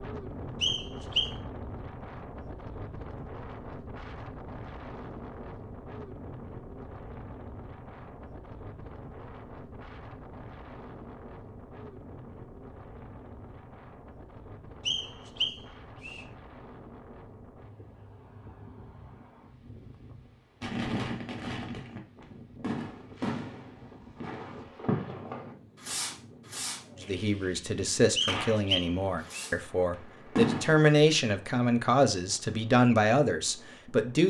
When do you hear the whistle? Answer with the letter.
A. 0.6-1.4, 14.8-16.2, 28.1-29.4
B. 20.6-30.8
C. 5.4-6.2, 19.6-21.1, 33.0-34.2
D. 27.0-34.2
A.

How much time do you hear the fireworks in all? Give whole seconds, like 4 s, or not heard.
10 s.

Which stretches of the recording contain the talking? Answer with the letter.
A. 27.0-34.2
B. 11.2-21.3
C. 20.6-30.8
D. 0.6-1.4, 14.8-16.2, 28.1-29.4
A.